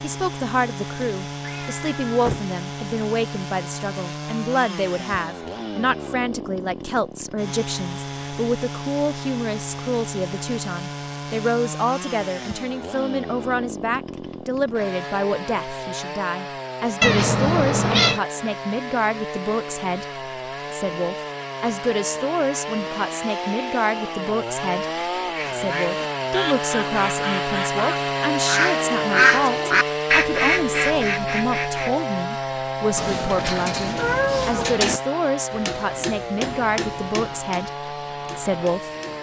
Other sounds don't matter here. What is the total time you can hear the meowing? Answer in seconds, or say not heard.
5 s.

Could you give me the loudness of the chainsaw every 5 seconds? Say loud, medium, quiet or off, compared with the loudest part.
medium, medium, medium, medium, medium, loud, loud, medium.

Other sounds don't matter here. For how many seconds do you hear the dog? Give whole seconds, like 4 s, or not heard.
not heard.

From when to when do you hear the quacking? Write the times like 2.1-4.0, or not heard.
25.3-31.9.